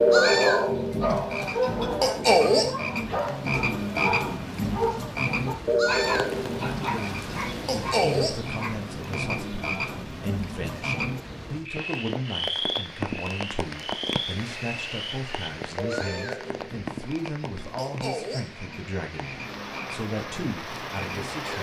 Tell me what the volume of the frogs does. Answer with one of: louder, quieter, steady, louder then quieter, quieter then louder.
quieter.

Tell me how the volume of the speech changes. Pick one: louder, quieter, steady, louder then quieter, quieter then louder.
steady.